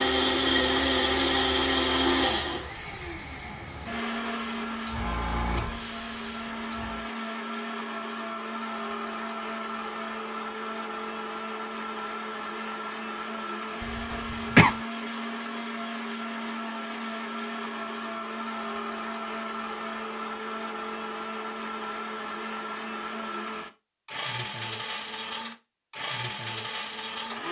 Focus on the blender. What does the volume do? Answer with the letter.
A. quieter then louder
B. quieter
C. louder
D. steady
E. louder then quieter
B.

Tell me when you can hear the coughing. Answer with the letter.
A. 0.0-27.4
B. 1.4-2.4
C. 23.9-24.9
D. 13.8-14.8
D.